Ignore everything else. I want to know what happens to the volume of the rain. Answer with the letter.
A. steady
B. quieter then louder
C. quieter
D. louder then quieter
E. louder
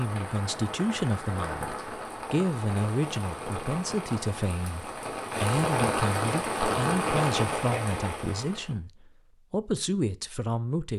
E.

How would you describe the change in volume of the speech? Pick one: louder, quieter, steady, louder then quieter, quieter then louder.
steady.